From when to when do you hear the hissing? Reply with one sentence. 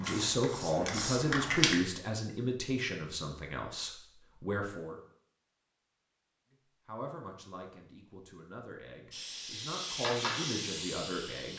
The hissing can be heard from 0.0 to 1.8 s and from 9.1 to 11.5 s.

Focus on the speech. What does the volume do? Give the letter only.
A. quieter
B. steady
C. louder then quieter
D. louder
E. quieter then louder
E.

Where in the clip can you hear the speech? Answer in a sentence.
You can hear the speech from 0.0 to 5.0 s and from 6.5 to 11.5 s.